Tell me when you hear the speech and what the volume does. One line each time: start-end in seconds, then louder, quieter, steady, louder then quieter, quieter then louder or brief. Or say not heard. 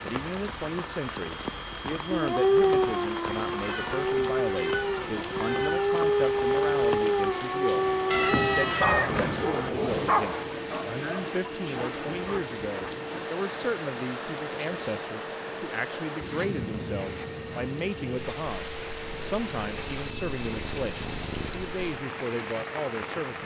0.0-23.4 steady.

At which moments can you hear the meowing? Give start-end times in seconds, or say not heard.
3.6-6.0, 8.1-10.1, 19.1-21.7.